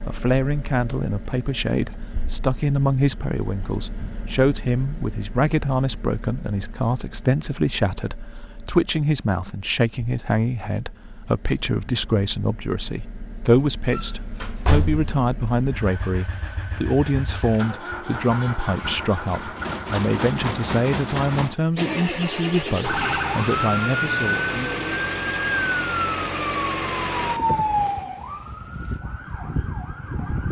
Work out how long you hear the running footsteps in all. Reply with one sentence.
The running footsteps can't be heard in this clip.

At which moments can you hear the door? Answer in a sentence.
The door can be heard from 13.9 to 15.1 s.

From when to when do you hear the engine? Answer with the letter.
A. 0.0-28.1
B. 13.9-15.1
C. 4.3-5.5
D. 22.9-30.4
A.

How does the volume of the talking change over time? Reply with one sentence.
The volume of the talking stays about the same.